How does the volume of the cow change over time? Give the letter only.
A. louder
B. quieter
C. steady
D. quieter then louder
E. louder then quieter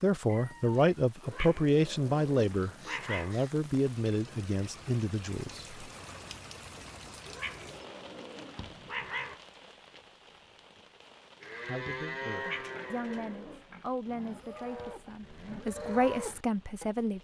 D.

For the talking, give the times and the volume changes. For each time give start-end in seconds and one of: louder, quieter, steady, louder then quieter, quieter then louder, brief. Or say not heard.
0.0-5.7 quieter
11.7-17.2 louder.